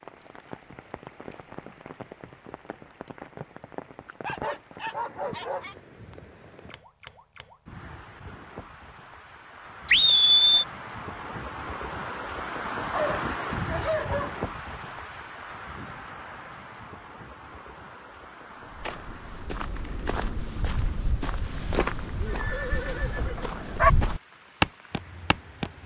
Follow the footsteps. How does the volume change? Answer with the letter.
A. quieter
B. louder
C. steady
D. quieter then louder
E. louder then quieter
B.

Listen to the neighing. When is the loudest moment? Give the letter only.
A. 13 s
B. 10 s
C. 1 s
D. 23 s
B.